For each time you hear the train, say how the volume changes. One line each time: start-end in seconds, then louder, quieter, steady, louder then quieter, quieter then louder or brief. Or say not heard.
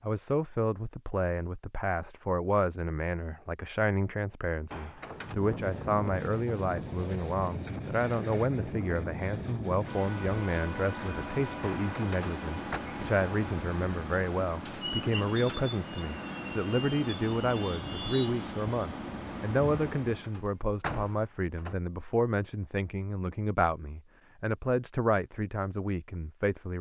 5.0-20.4 steady.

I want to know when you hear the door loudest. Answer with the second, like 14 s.
21 s.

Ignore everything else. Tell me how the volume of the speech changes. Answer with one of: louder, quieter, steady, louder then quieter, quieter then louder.
steady.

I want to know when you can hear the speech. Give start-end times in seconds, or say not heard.
0.0-26.7.